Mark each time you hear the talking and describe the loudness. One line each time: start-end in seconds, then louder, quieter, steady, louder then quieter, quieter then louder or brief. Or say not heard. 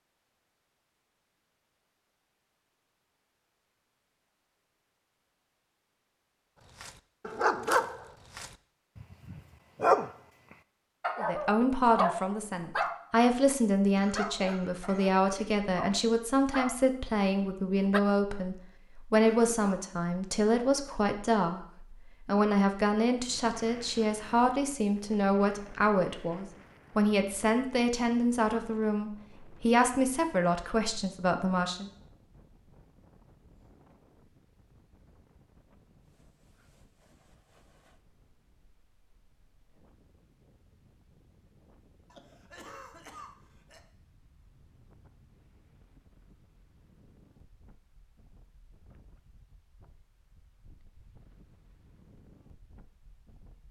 11.2-31.9 steady.